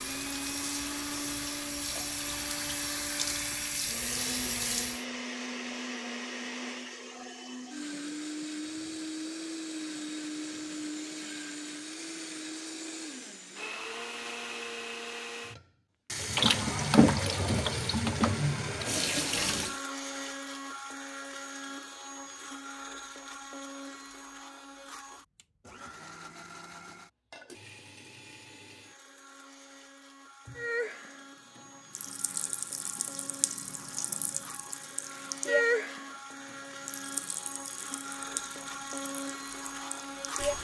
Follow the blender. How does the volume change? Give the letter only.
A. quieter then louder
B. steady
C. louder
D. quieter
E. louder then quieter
A.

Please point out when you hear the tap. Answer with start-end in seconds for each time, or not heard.
0.0-5.0, 16.2-19.8, 30.4-40.5.